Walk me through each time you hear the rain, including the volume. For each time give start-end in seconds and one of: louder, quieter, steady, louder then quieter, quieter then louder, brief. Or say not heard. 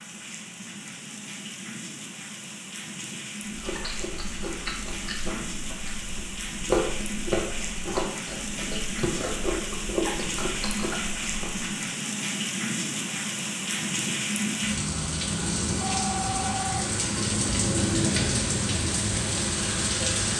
0.0-20.3 louder.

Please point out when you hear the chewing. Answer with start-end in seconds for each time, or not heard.
3.5-11.7.